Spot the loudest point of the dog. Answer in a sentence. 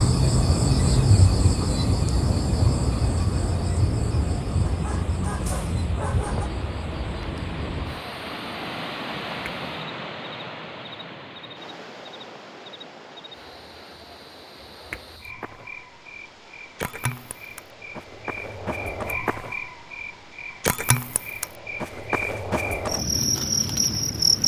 The loudest moment of the dog is at 6 seconds.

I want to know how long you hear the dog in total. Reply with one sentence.
You can hear the dog for 2 seconds altogether.